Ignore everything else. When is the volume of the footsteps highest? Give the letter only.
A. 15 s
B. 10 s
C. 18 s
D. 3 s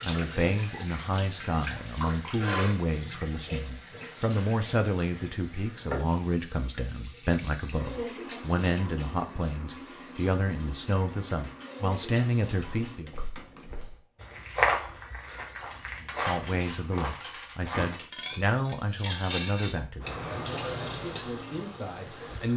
A.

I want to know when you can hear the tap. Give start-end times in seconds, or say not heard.
0.0-13.0, 20.0-22.5.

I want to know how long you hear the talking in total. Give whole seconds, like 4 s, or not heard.
20 s.